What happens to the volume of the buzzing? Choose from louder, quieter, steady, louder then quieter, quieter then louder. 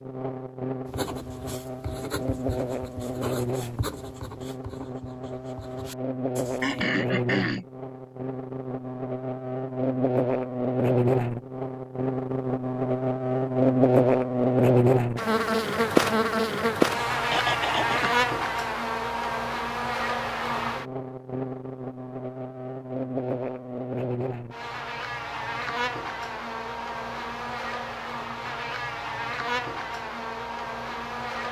louder then quieter.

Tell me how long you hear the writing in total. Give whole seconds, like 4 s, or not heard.
6 s.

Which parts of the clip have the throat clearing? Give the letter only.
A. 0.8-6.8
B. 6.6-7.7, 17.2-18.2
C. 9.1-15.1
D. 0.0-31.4
B.